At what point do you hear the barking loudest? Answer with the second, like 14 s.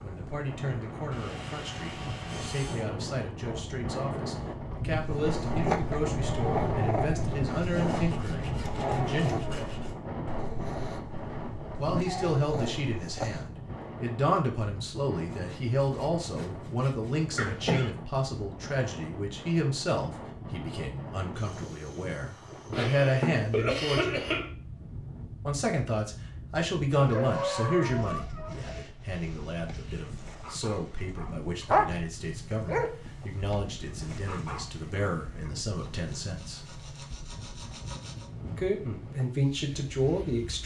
32 s.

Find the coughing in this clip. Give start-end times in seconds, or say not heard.
17.4-17.9, 22.7-24.5.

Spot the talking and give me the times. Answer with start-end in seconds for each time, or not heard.
0.0-9.7, 11.8-24.2, 25.4-36.6, 38.5-40.6.